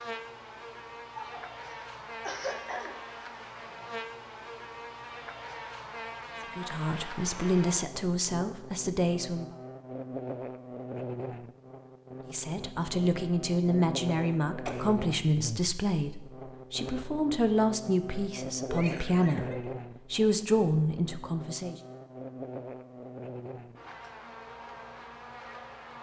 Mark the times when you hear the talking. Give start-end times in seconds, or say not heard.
6.5-9.6, 12.3-21.8.